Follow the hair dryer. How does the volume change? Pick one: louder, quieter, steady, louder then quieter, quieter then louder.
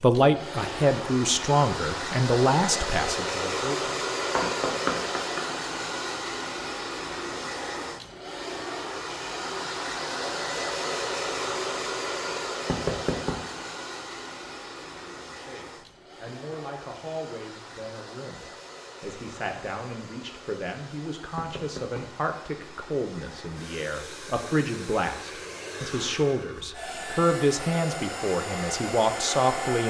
quieter then louder.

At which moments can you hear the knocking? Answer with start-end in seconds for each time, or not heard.
4.3-5.5, 12.7-13.3, 21.4-22.0.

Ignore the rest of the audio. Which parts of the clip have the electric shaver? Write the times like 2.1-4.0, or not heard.
not heard.